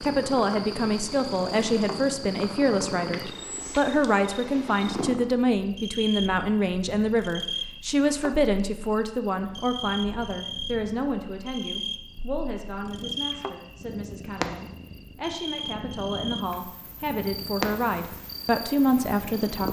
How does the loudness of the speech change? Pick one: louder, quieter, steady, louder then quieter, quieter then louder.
quieter then louder.